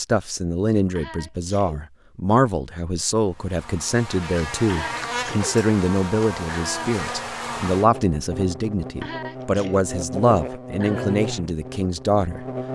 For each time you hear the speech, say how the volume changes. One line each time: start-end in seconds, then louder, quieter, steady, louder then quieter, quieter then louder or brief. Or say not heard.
0.0-12.4 steady.